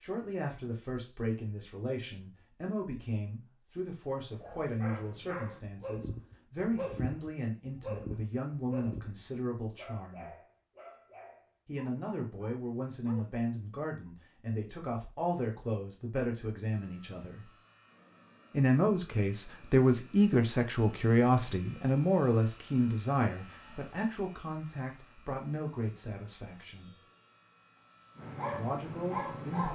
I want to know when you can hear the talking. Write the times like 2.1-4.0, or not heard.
0.0-10.3, 11.7-17.5, 18.5-26.9, 28.5-29.6.